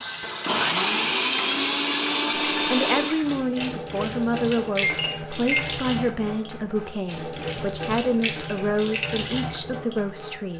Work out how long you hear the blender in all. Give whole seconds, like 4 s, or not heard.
3 s.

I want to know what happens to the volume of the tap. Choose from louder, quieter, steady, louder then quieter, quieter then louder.
steady.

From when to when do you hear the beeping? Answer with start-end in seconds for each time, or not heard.
4.8-5.7.